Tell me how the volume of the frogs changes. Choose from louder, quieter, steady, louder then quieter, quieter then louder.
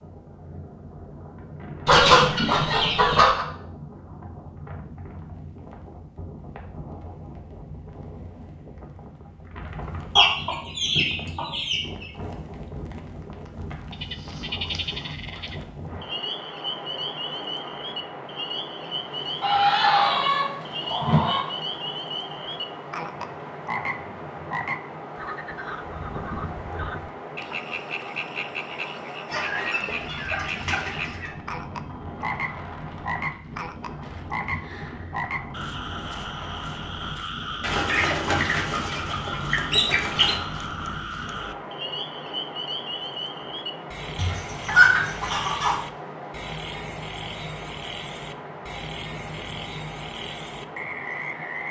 steady.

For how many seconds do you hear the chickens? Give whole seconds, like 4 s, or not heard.
12 s.